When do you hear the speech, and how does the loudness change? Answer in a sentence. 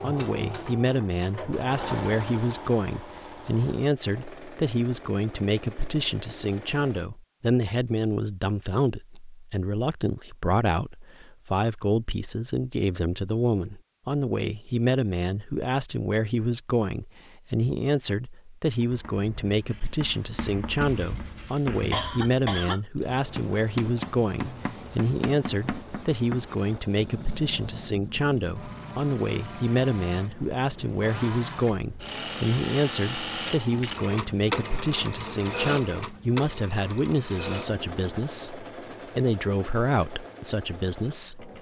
You can hear the speech from 0.0 to 41.5 s, at a steady volume.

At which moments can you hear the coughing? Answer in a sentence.
The coughing can be heard from 21.9 to 22.8 s.